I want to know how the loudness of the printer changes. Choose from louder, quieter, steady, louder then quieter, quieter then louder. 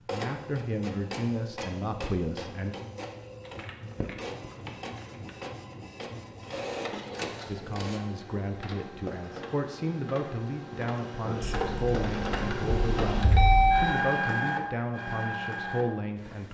louder.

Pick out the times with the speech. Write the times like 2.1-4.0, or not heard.
0.1-2.8, 7.5-16.4.